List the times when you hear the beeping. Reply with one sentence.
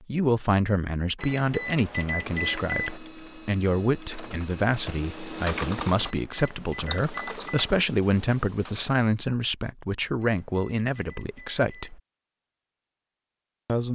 You can hear the beeping from 1.1 to 3.0 s, from 6.0 to 7.7 s and from 10.2 to 12.0 s.